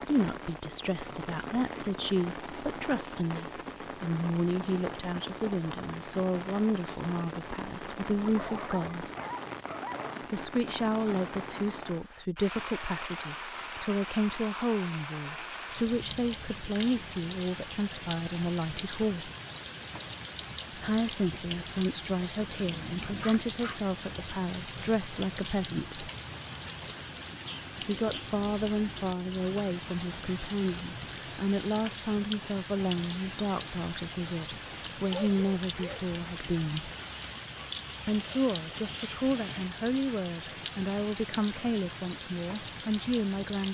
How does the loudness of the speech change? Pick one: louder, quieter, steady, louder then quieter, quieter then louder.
steady.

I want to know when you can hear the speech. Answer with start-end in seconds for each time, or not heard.
0.1-9.1, 10.3-19.3, 20.8-26.1, 27.8-36.9, 38.0-43.6.